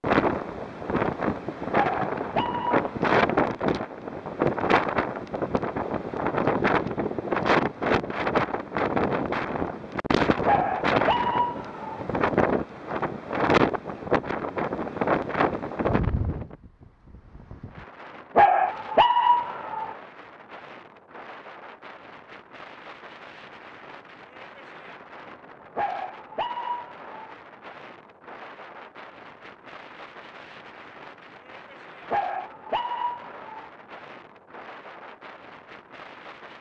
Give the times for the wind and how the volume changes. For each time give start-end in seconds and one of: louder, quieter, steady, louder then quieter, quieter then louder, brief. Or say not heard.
0.0-36.5 quieter.